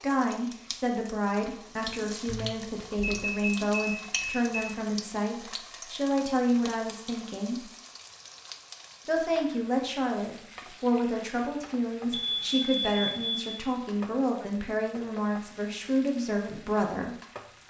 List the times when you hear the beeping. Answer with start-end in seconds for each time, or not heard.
2.2-4.5, 12.1-13.7.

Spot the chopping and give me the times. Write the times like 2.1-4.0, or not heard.
not heard.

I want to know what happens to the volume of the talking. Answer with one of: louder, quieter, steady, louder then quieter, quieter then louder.
steady.